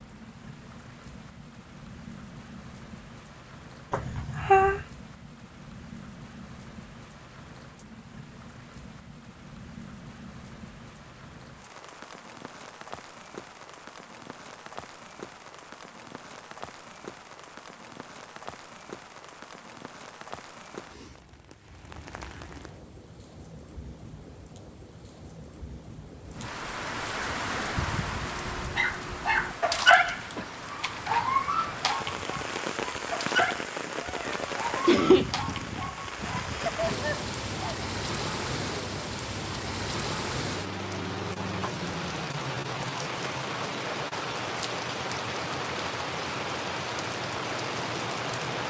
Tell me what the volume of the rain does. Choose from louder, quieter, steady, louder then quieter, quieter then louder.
louder.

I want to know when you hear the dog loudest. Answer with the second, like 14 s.
30 s.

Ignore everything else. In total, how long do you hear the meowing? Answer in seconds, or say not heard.
2 s.